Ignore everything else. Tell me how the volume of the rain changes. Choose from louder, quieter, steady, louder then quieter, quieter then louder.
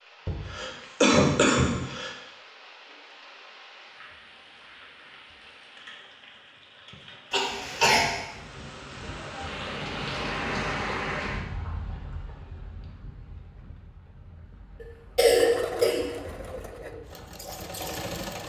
louder then quieter.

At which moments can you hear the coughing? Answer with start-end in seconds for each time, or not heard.
0.2-2.1, 7.3-8.1, 14.8-16.1.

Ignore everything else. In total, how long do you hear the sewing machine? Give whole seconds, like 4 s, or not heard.
3 s.